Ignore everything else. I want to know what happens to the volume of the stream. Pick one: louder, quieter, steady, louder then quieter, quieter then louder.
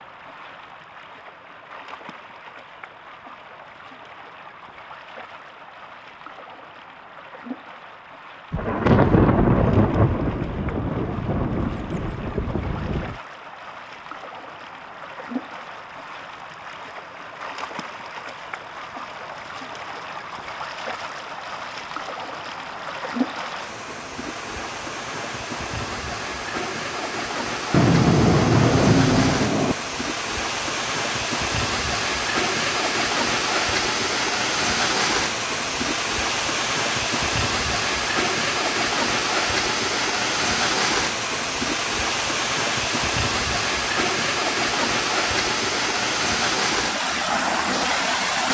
louder.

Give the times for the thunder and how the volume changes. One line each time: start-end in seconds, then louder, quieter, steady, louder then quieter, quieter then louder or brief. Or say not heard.
8.5-13.2 quieter
27.7-29.8 brief.